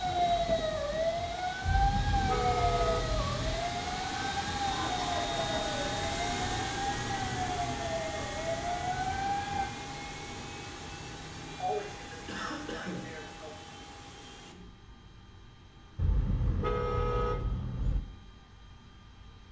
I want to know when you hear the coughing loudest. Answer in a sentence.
The volume of the coughing peaks at 12 seconds.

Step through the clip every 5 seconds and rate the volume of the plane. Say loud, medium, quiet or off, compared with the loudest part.
loud, loud, medium, quiet.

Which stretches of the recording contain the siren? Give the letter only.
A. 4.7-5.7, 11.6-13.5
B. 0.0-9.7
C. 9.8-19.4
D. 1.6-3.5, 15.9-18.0
B.